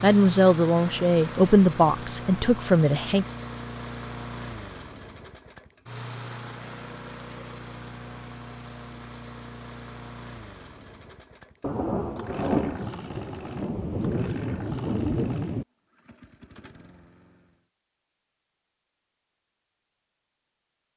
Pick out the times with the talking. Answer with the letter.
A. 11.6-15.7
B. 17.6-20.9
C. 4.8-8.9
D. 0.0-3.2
D.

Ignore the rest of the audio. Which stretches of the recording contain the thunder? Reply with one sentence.
You can hear the thunder from 11.6 to 15.7 s.